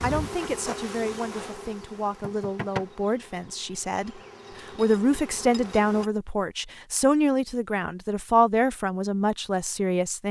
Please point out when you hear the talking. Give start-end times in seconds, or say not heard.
0.0-10.2.